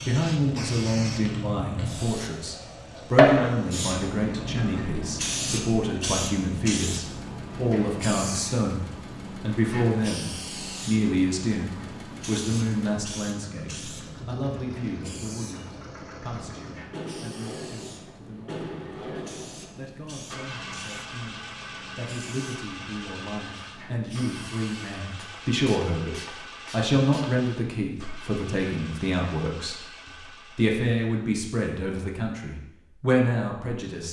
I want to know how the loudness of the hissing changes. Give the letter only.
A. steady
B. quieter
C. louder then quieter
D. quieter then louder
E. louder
B.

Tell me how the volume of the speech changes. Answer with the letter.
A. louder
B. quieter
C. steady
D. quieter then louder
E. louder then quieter
D.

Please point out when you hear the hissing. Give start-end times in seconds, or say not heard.
0.0-27.3.